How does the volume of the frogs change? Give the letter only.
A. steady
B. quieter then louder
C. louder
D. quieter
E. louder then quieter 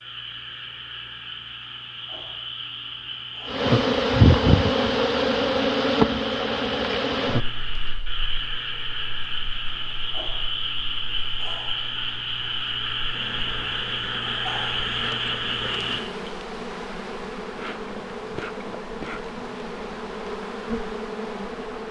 C.